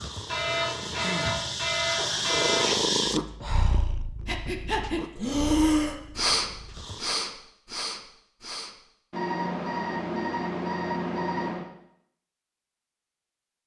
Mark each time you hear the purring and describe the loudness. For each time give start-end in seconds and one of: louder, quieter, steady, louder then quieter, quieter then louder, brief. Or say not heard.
0.0-7.2 louder then quieter.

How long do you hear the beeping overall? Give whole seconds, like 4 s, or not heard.
5 s.